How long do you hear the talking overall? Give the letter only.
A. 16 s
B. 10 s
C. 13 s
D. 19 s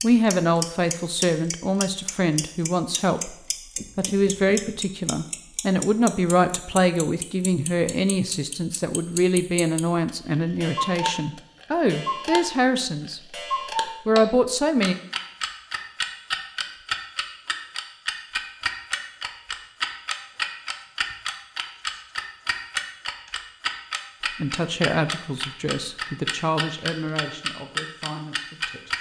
D.